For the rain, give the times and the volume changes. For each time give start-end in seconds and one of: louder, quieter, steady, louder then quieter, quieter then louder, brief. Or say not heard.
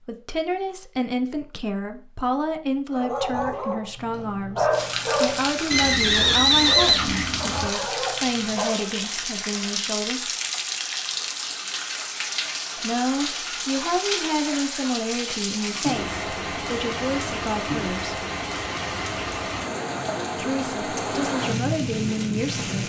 4.7-22.8 steady.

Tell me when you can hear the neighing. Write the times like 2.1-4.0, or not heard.
5.7-7.7.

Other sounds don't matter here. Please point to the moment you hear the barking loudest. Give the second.
5 s.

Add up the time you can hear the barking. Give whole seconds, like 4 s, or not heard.
6 s.